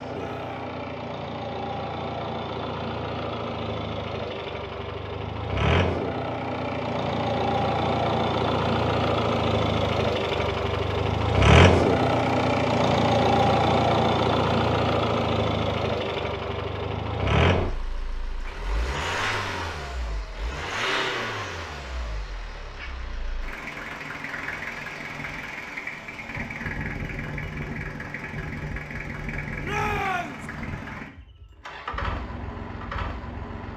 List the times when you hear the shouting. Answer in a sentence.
You can hear the shouting from 0.1 to 0.7 s and from 29.6 to 30.4 s.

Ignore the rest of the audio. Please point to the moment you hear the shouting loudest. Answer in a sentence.
The volume of the shouting peaks at 30 seconds.